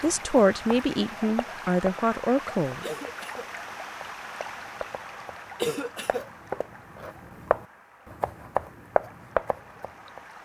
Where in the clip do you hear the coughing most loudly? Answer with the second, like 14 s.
6 s.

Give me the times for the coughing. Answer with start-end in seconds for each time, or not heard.
2.8-3.5, 5.5-6.2.